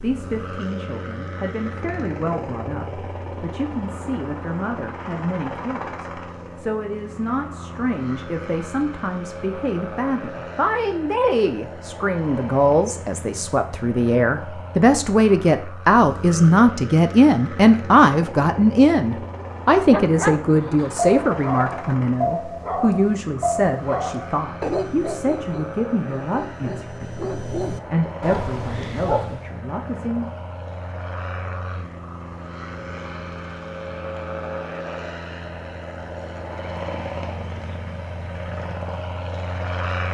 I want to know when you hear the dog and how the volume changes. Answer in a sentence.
The dog can be heard from 19.8 to 29.6 s, getting quieter then louder.